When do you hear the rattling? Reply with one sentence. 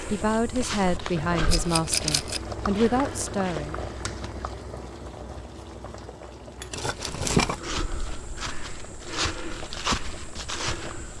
The rattling can be heard from 1.5 to 2.4 s and from 6.7 to 7.6 s.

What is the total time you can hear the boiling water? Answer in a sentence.
The boiling water can be heard for 11 seconds in total.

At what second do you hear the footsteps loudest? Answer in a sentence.
The volume of the footsteps peaks at 10 seconds.